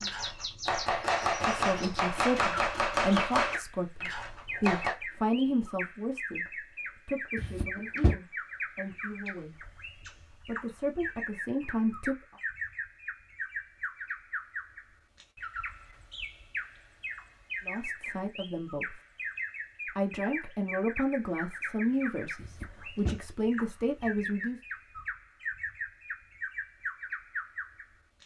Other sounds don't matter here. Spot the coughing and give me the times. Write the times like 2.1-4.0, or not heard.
7.3-8.2, 22.4-23.2.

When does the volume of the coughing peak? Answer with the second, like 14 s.
8 s.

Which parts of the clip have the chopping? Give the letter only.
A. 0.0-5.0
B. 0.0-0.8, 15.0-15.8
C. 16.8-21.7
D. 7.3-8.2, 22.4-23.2
A.